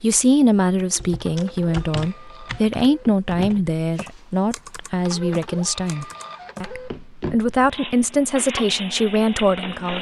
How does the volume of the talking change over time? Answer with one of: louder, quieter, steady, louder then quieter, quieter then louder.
steady.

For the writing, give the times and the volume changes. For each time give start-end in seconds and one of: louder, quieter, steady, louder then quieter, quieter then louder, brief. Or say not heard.
not heard.